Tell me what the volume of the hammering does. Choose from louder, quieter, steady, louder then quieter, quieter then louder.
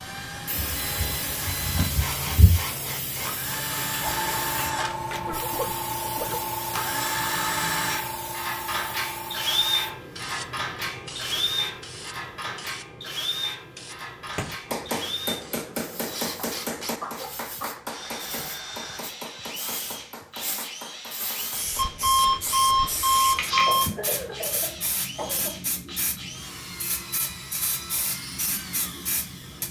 quieter.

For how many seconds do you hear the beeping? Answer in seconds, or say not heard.
4 s.